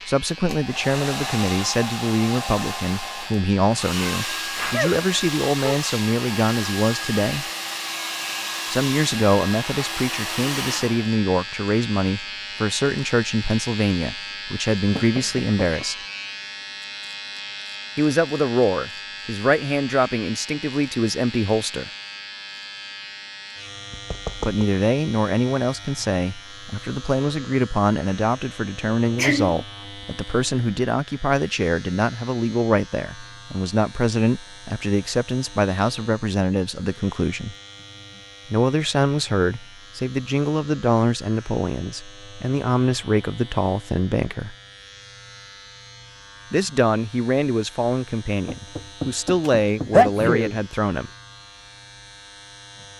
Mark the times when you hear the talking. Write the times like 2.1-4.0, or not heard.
0.1-7.5, 8.7-15.9, 17.9-21.9, 24.4-37.5, 38.5-44.5, 46.5-51.1.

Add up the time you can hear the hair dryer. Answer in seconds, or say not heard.
11 s.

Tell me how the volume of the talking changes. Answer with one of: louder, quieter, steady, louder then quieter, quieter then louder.
steady.